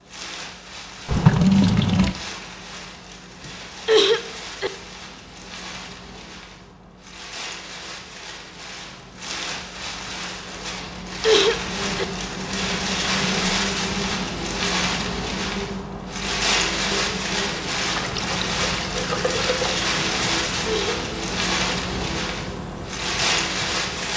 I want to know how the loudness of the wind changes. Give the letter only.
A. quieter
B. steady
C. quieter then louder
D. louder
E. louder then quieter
D.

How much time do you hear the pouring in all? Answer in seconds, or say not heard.
3 s.